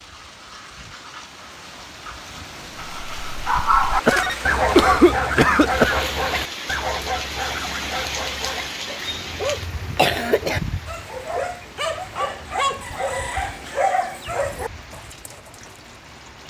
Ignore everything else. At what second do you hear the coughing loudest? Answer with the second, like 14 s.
5 s.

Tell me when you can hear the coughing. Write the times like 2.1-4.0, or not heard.
4.0-6.0, 9.1-10.6.